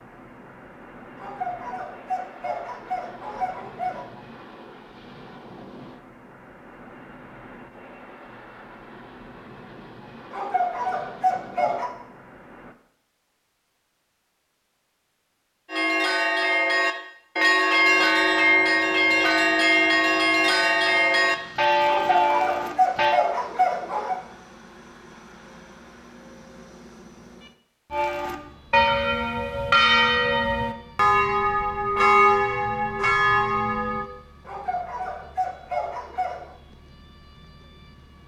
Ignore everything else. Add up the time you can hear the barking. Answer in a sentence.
The barking can be heard for 9 seconds in total.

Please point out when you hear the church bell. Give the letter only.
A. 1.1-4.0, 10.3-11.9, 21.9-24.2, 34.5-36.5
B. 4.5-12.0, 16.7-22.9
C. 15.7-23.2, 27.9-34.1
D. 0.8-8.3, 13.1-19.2
C.